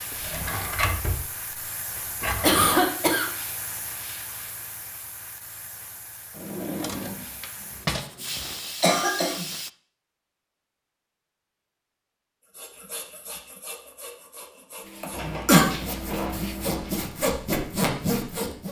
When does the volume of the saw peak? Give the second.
18 s.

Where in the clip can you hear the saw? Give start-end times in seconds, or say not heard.
12.6-18.6.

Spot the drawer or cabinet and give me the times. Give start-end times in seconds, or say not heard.
0.1-1.2, 2.2-2.8, 6.3-8.1, 15.1-16.9.